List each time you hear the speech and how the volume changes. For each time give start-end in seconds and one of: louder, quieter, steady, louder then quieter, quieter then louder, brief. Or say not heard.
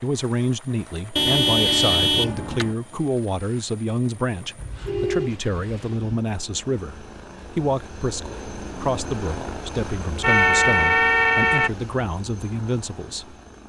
0.0-13.3 steady.